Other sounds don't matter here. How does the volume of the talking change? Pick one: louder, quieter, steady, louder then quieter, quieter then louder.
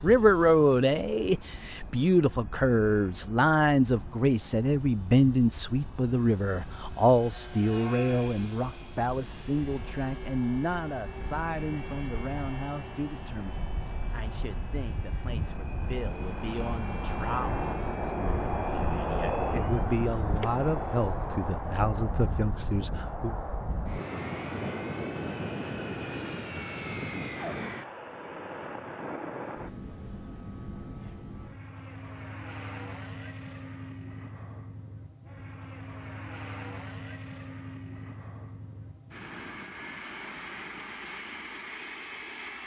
quieter then louder.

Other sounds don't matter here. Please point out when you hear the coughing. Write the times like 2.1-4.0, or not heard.
not heard.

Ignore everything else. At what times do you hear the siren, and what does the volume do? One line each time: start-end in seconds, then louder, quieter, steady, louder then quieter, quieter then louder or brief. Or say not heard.
not heard.